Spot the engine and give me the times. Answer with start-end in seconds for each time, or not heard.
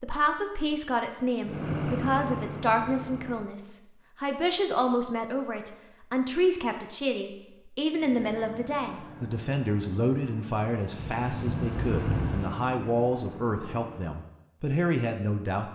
1.4-3.5, 7.9-14.2.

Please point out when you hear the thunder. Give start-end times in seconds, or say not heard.
10.9-12.5.